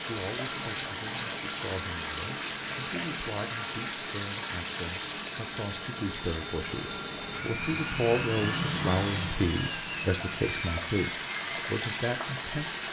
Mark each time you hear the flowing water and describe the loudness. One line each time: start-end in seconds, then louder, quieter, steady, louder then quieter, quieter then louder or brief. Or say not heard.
0.0-12.8 quieter then louder.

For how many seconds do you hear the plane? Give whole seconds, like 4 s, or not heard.
13 s.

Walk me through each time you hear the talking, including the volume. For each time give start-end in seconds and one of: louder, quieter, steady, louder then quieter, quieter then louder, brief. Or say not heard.
0.0-12.8 louder.